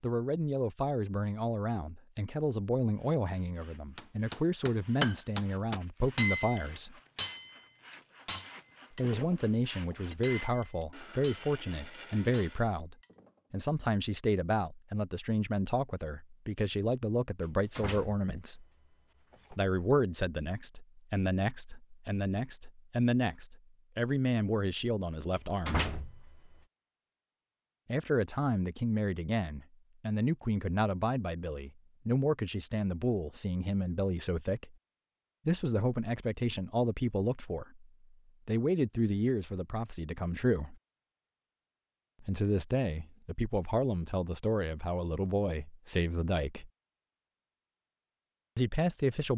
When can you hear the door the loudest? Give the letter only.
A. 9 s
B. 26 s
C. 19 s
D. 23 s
B.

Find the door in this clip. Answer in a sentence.
You can hear the door from 17.4 to 19.6 s and from 25.3 to 26.6 s.